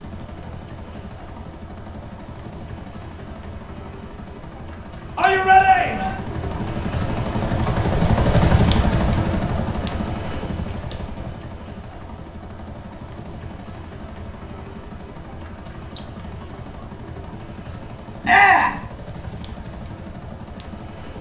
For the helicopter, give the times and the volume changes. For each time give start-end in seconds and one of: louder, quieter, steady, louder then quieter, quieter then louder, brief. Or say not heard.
0.0-21.1 louder then quieter.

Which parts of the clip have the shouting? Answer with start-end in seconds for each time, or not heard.
5.2-6.2, 18.2-18.8.